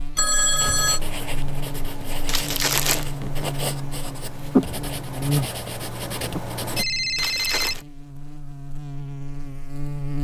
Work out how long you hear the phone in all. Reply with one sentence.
You can hear the phone for 2 seconds altogether.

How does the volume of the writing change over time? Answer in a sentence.
The loudness of the writing goes up, then down.